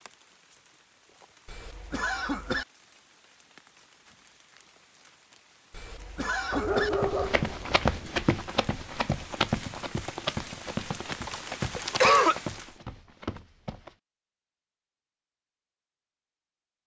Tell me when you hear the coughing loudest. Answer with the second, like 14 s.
12 s.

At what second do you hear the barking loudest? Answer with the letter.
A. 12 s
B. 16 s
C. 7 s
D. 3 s
C.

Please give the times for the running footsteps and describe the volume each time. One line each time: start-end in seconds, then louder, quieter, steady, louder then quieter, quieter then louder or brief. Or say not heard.
6.9-13.9 quieter.